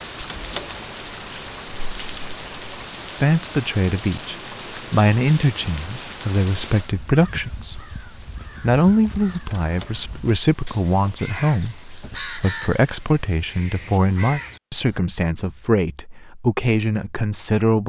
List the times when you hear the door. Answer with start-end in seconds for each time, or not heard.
0.2-0.8, 9.6-10.1.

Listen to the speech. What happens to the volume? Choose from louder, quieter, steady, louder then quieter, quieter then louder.
steady.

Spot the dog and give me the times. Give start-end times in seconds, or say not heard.
not heard.